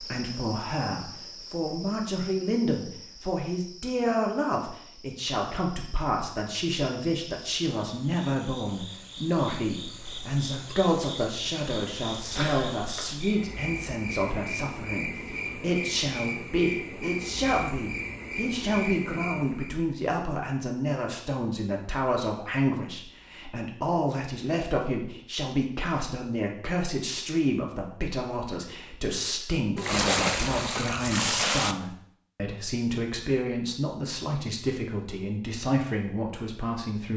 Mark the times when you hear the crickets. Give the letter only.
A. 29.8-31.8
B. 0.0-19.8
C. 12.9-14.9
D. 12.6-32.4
B.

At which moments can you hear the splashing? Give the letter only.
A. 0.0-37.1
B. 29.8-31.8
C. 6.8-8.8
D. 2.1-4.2
B.